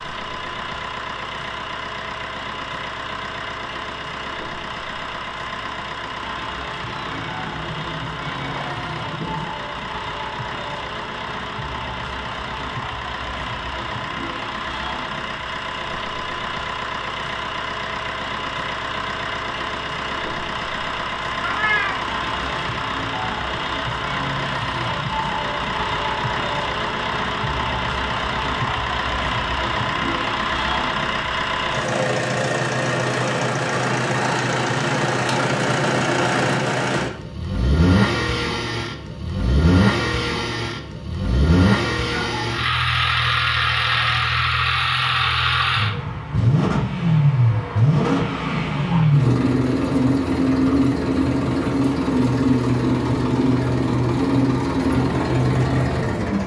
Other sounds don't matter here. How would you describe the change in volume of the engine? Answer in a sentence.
The loudness of the engine goes up.